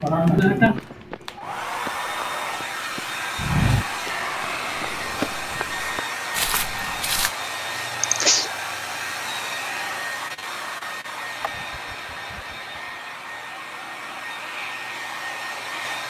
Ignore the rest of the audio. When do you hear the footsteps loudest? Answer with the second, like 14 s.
4 s.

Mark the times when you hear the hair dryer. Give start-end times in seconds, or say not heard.
0.0-16.0.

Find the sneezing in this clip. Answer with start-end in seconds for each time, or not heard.
0.0-0.8, 7.8-8.5, 11.4-12.8.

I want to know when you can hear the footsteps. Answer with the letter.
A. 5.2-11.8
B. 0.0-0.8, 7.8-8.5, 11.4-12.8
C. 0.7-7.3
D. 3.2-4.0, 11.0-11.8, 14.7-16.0
C.